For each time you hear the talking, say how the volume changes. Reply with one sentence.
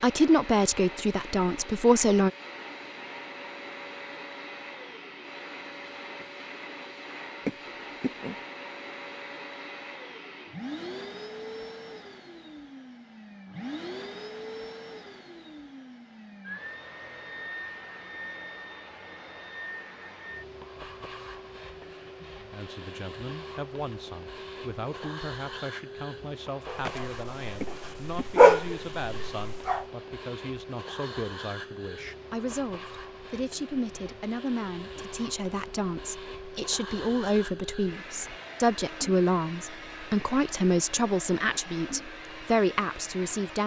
The talking can be heard briefly from 0.0 to 2.3 s; and from 22.2 to 43.6 s, getting louder.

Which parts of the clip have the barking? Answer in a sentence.
The barking can be heard from 26.6 to 29.9 s.